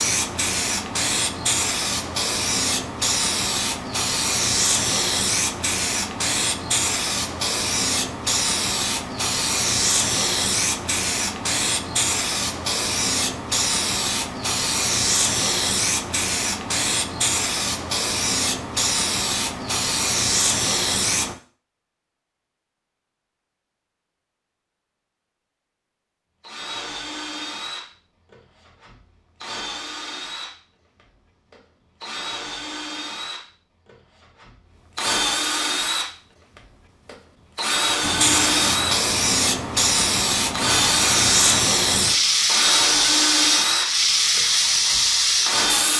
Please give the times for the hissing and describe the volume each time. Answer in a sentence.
You can hear the hissing from 0.0 to 21.4 s, at a steady volume; and from 38.0 to 45.9 s, at a steady volume.